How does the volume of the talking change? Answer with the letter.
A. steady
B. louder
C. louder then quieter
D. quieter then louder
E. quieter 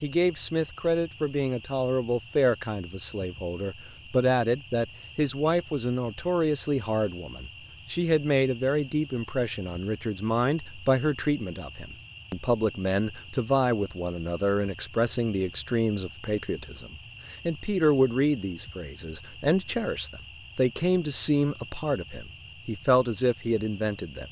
A.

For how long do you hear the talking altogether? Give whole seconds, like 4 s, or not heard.
24 s.